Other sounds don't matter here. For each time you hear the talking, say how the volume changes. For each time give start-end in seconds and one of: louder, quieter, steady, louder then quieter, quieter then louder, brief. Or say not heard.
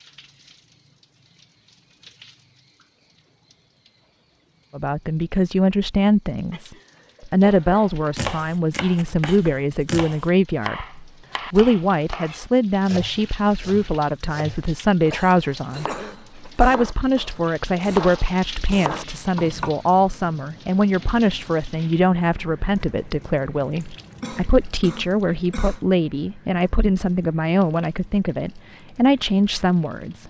4.8-30.2 steady.